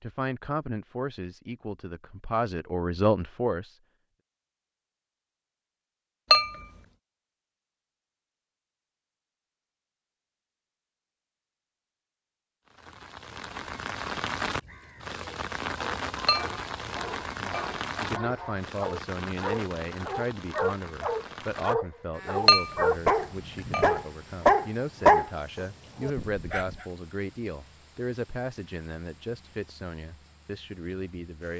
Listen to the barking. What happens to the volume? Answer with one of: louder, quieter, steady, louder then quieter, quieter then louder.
louder.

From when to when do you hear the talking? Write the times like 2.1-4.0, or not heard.
0.0-3.8, 17.6-31.5.